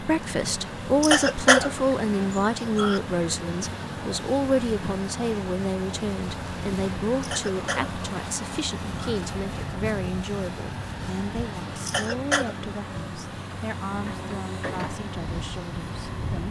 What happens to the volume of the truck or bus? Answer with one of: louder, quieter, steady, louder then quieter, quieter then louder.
steady.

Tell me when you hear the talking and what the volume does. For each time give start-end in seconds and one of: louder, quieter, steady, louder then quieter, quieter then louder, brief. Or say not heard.
0.0-16.4 quieter.